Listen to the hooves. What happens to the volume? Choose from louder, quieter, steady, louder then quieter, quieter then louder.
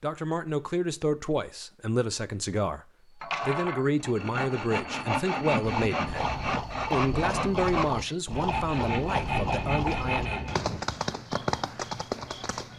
steady.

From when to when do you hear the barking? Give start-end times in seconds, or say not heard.
not heard.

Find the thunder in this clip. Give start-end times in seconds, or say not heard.
8.8-10.8.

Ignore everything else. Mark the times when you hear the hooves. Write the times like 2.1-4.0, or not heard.
5.6-12.7.